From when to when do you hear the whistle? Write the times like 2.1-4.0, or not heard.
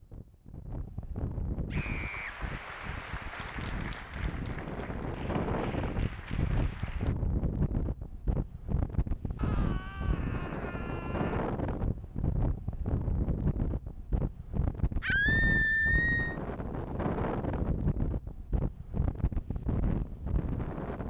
not heard.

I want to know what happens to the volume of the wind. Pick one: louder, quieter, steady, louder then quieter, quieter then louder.
louder.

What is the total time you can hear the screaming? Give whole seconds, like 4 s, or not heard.
4 s.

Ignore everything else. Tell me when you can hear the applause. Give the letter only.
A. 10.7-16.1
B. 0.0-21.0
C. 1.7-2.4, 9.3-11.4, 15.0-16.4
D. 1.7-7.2
D.